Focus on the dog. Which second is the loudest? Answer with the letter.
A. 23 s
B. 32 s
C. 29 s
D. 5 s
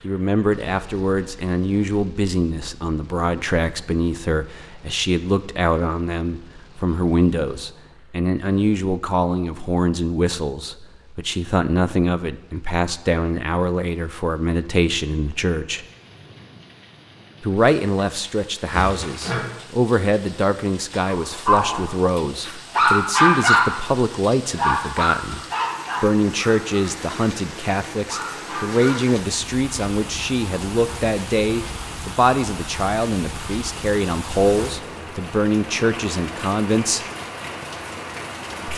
A.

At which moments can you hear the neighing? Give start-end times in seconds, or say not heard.
18.7-19.4.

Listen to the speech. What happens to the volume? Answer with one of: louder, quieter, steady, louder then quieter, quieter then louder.
steady.